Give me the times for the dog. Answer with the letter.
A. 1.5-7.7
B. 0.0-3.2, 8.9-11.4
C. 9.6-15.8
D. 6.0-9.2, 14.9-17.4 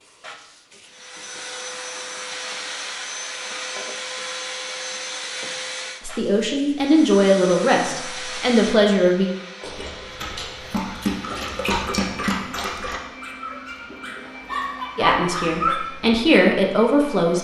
C.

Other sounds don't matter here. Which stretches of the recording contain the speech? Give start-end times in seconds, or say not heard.
6.0-9.2, 14.9-17.4.